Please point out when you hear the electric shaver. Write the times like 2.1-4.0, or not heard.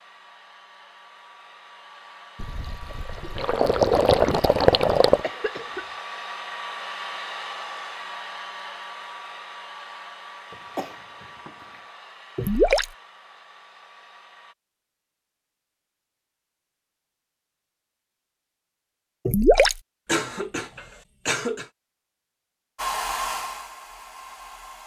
not heard.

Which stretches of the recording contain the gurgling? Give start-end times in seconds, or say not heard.
2.4-5.2, 12.3-12.9, 19.2-19.8.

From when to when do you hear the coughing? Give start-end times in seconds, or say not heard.
5.2-5.8, 10.5-11.8, 20.1-21.6.